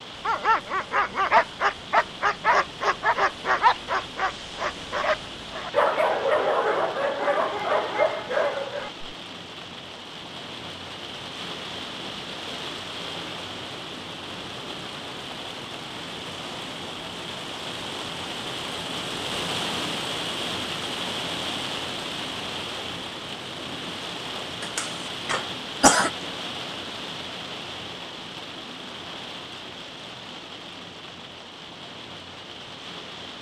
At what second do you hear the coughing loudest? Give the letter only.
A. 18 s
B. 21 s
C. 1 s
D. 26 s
D.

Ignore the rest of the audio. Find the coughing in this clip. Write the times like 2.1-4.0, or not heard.
24.6-26.1.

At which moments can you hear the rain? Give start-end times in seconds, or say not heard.
0.0-33.3.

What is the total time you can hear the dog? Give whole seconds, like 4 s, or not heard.
9 s.